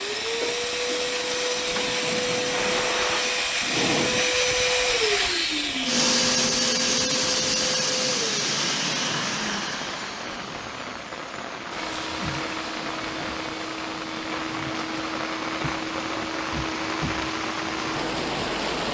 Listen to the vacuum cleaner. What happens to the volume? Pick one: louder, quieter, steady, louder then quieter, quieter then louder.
quieter.